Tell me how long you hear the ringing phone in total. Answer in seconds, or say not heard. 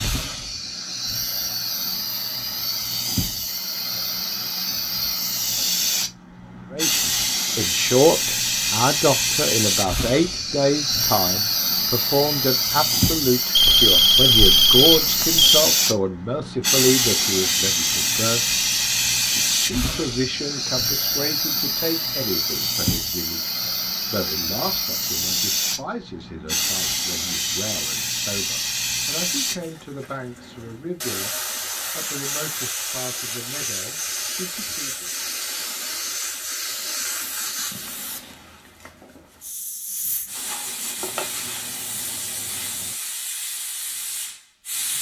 4 s.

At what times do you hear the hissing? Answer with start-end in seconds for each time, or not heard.
0.0-44.9.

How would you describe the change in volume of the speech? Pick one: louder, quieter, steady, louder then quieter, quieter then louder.
quieter.